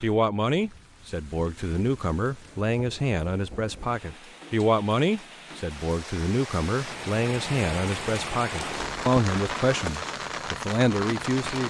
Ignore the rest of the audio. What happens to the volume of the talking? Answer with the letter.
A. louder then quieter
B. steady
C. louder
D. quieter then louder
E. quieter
B.